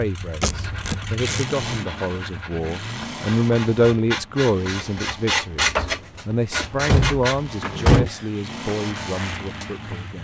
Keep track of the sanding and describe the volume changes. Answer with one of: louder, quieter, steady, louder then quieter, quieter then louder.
louder then quieter.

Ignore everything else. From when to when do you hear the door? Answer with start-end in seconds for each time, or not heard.
0.4-1.1, 6.5-8.1.